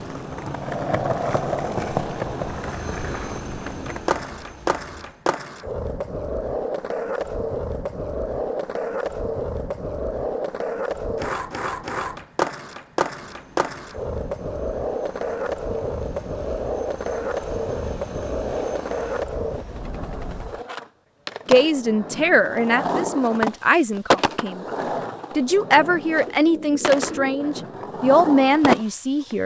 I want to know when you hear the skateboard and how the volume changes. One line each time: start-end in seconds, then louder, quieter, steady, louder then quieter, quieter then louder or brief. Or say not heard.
0.0-29.4 steady.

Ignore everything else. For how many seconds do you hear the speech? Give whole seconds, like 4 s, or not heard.
7 s.